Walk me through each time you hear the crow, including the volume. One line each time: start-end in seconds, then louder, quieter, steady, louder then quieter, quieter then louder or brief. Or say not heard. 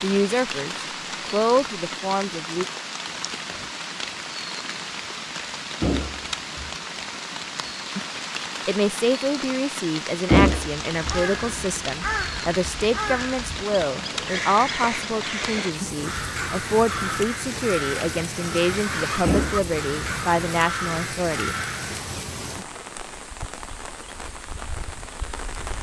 10.9-22.0 steady.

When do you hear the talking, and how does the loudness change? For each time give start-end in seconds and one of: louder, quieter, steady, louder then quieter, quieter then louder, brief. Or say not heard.
0.0-2.6 brief
8.7-21.6 steady.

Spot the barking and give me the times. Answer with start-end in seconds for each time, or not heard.
not heard.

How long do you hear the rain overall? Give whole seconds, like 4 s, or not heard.
26 s.